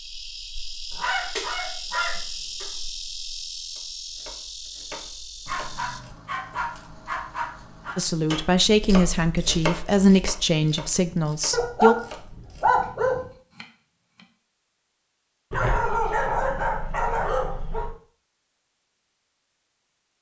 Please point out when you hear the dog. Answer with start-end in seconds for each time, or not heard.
0.9-2.6, 5.5-8.0, 11.5-13.2, 15.5-17.9.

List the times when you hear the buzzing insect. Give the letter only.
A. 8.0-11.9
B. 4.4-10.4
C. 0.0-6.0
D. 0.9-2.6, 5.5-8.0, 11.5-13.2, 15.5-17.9
C.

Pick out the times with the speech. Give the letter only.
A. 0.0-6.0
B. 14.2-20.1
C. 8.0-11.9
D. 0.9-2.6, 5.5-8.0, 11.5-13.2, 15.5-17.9
C.